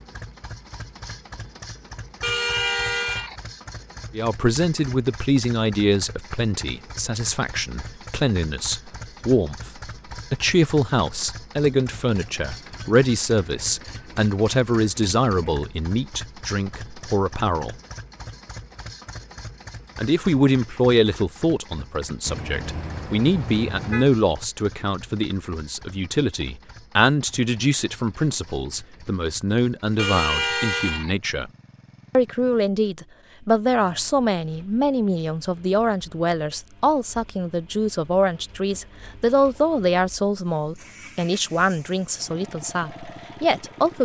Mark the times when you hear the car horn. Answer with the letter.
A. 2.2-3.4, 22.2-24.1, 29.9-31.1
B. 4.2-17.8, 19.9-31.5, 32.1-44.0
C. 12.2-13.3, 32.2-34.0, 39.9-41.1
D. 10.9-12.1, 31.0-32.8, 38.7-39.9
A.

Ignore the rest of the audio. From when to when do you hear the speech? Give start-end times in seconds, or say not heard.
4.2-17.8, 19.9-31.5, 32.1-44.0.